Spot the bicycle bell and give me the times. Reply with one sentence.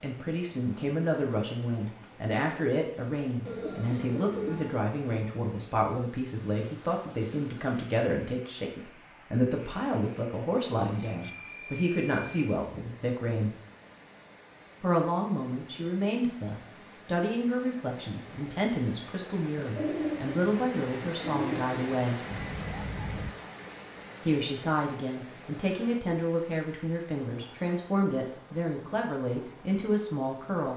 You can hear the bicycle bell from 10.9 to 12.3 s and from 22.3 to 23.3 s.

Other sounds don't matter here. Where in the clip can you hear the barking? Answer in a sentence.
The barking can't be heard in this clip.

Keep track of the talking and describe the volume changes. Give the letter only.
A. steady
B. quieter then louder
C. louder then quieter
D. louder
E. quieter
A.